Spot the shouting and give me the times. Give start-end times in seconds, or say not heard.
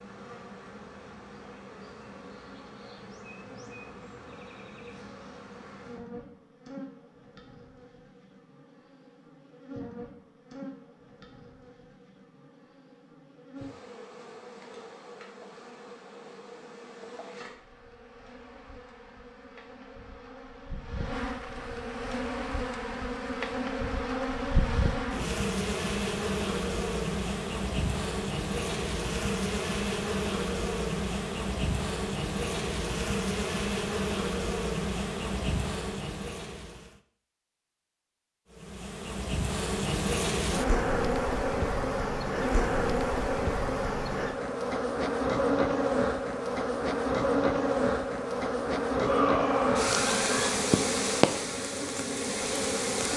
49.0-50.5.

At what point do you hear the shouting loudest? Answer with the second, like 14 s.
49 s.